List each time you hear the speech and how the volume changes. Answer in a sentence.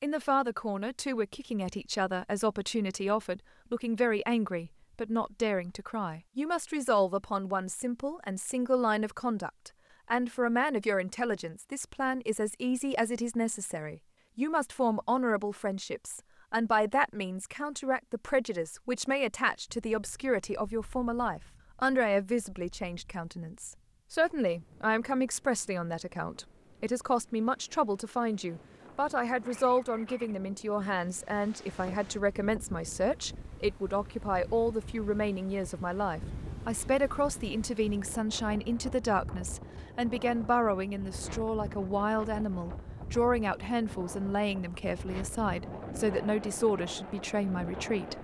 The speech can be heard from 0.0 to 48.1 s, at a steady volume.